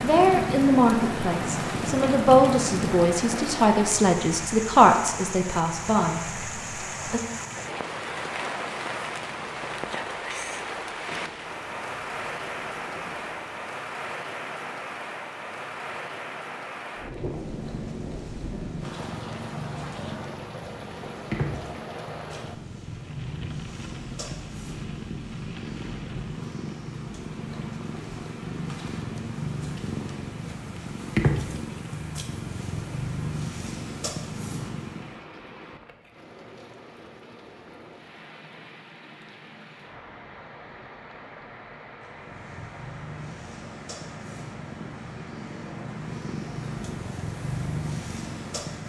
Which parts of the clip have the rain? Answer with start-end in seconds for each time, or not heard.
0.0-48.8.